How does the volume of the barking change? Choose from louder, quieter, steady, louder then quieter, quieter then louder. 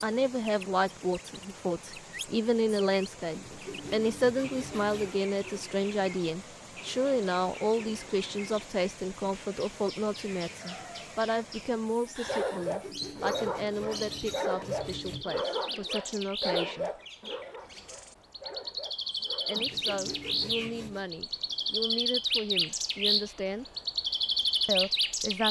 quieter.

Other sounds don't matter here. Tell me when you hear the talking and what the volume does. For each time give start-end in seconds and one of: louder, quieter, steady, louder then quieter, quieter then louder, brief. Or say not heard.
0.0-16.9 quieter
19.4-23.6 steady
24.6-25.4 brief.